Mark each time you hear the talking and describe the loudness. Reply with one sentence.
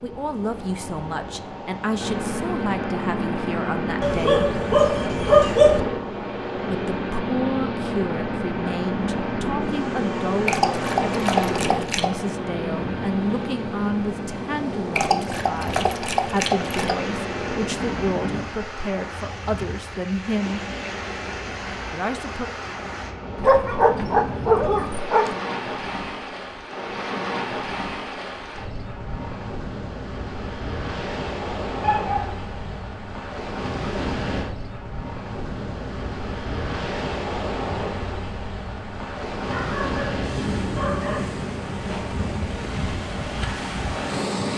You can hear the talking from 0.0 to 4.5 s, at a steady volume; from 6.7 to 20.6 s, at a steady volume; and briefly from 21.9 to 22.5 s.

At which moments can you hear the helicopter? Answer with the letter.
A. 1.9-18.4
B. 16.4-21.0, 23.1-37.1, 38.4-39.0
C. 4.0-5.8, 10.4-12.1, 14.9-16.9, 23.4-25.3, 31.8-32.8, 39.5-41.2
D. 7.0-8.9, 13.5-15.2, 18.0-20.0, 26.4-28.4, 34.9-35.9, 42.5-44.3
A.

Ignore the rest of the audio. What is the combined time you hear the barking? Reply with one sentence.
You can hear the barking for 10 seconds altogether.